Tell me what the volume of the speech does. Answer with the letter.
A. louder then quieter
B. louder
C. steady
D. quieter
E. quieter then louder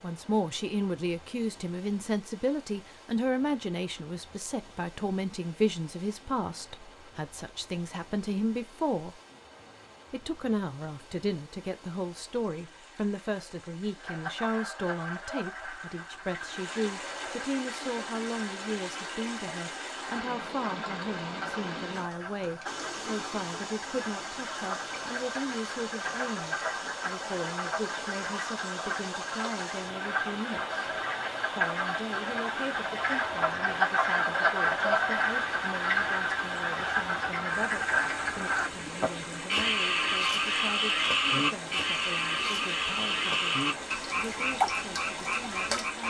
D.